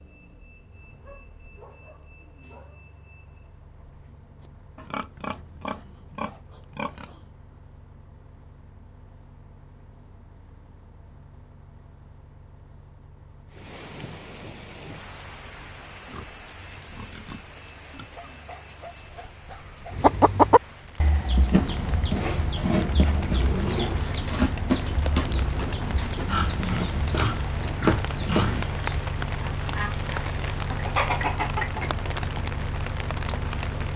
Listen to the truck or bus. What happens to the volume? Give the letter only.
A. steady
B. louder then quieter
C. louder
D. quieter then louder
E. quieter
C.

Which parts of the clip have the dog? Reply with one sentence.
You can hear the dog from 1.0 to 2.9 s and from 18.1 to 20.1 s.